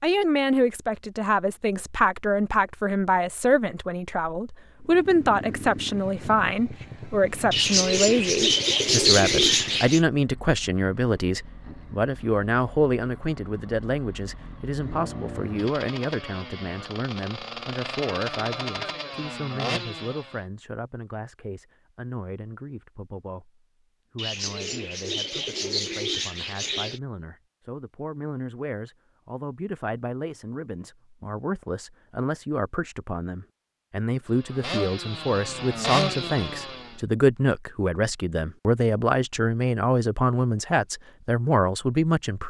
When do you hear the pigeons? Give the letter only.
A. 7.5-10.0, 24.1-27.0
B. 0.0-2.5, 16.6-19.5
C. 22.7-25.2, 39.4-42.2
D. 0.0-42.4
A.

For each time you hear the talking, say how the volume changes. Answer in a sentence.
The talking can be heard from 0.0 to 42.4 s, getting quieter then louder.